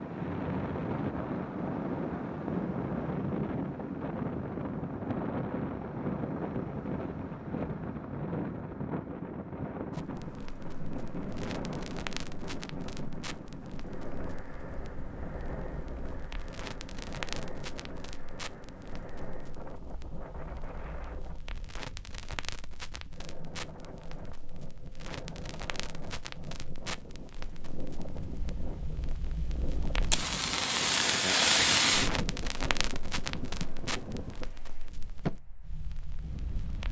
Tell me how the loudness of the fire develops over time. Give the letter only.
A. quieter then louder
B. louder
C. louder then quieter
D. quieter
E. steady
B.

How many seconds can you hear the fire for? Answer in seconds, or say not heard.
27 s.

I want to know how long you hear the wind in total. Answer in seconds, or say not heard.
37 s.